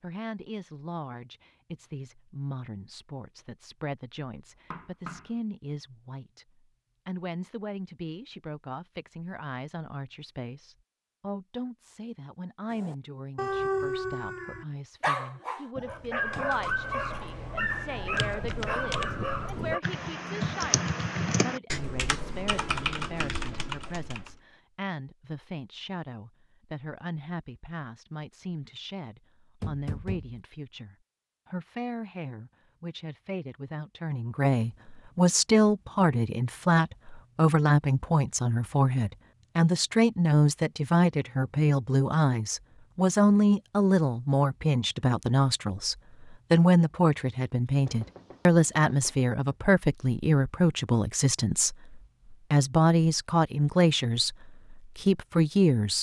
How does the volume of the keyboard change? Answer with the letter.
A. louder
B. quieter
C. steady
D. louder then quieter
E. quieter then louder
A.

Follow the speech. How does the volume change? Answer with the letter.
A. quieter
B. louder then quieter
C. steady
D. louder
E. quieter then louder
D.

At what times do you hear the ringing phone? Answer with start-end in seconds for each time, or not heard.
not heard.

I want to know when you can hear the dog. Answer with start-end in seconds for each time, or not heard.
12.7-19.8.